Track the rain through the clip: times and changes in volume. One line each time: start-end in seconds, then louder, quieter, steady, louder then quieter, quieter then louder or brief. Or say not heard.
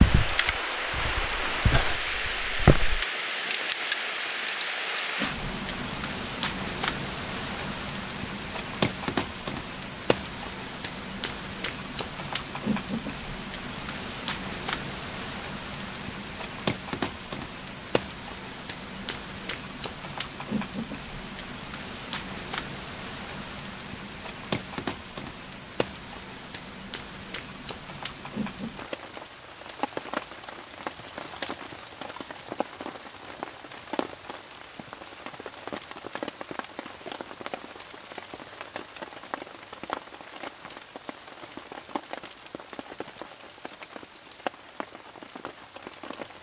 0.0-46.3 quieter.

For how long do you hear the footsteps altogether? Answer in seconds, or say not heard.
3 s.